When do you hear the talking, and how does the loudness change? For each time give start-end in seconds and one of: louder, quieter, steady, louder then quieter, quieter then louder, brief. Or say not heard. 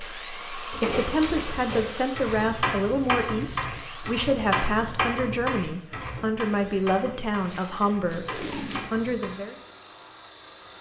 0.0-9.6 steady.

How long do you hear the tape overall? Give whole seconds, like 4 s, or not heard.
2 s.